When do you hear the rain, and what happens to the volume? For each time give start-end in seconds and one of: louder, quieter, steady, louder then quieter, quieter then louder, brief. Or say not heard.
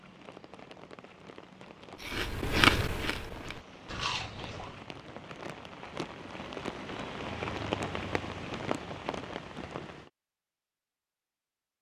0.0-10.1 louder.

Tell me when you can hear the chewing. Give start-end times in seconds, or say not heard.
2.0-4.8.